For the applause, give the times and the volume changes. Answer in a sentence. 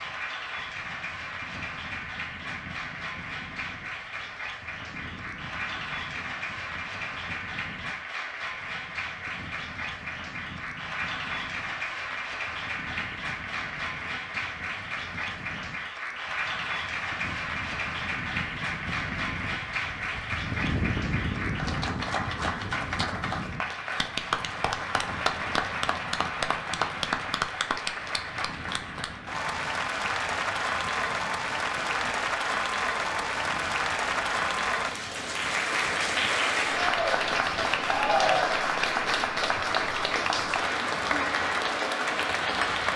The applause can be heard from 0.0 to 42.9 s, getting louder.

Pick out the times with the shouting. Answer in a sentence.
The shouting can be heard from 37.8 to 38.8 s.